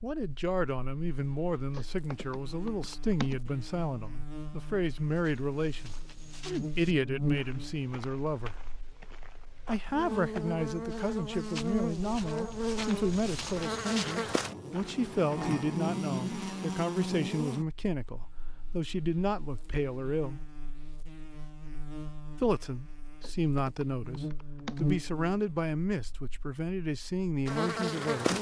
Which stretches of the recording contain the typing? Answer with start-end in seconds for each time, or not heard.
1.7-3.4, 23.2-24.9.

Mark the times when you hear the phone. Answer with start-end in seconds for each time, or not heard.
not heard.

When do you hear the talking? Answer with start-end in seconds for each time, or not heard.
0.0-8.6, 9.7-20.4, 22.4-28.3.